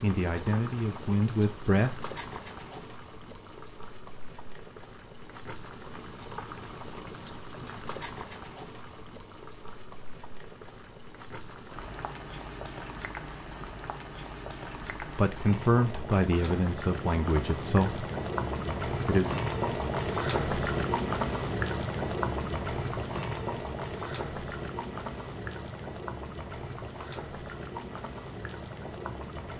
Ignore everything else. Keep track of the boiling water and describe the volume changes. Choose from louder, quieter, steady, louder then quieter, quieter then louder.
louder then quieter.